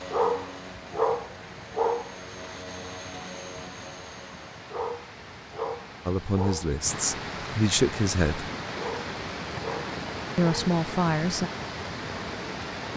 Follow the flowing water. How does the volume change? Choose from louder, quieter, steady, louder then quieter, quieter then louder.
louder.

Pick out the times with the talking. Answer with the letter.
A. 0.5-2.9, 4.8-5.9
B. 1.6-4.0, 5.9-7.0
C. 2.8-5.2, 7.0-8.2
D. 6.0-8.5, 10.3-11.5
D.